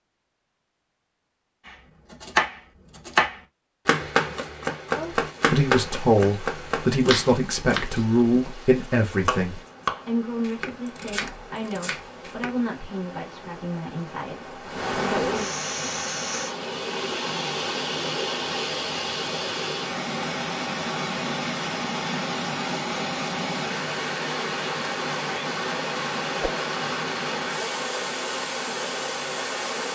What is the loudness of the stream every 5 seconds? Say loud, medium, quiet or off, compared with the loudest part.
off, quiet, medium, loud, loud, loud.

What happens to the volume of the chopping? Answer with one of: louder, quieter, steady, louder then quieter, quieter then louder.
quieter.